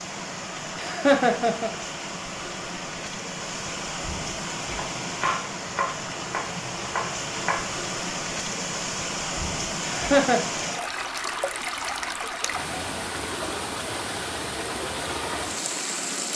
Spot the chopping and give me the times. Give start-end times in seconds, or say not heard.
4.6-7.8.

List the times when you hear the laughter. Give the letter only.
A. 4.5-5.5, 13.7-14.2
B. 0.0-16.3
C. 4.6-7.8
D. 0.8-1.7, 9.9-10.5
D.